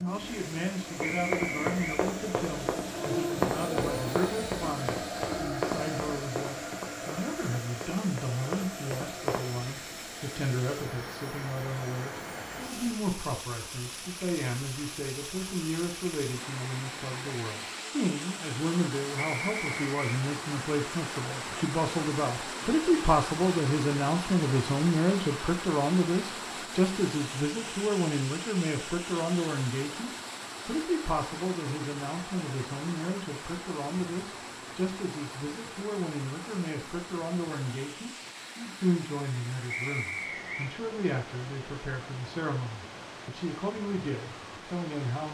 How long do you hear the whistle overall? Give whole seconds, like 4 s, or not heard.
3 s.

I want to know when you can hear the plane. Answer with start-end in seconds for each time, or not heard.
0.0-12.9.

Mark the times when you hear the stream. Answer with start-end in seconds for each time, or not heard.
0.0-45.2.